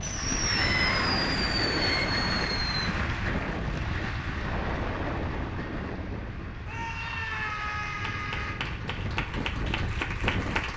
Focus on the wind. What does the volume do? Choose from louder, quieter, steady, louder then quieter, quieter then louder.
quieter then louder.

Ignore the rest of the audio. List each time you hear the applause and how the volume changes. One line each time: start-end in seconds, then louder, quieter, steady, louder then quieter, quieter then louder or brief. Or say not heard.
0.0-10.7 quieter then louder.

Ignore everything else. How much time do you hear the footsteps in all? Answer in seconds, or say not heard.
not heard.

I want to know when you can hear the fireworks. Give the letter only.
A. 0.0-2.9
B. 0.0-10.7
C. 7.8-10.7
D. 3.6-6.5
A.